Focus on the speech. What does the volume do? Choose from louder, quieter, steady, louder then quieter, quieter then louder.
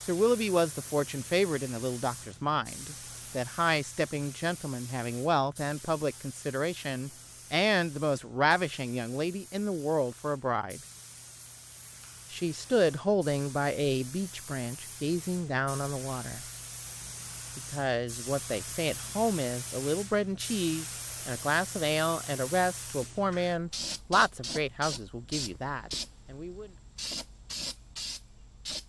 steady.